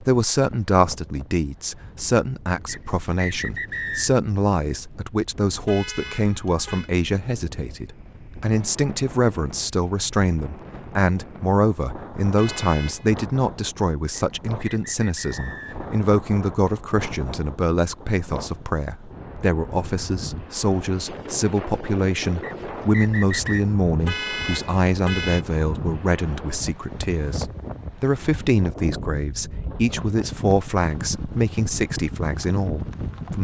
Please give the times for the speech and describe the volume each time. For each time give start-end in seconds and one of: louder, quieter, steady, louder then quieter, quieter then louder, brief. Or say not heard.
0.0-33.3 steady.